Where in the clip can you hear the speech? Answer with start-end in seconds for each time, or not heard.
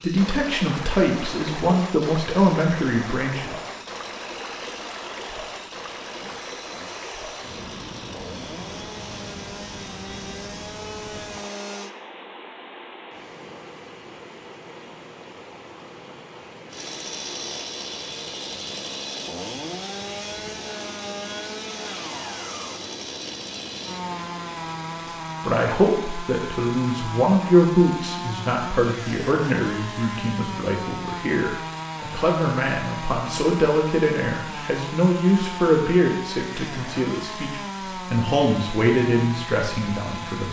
0.0-3.5, 25.4-40.4.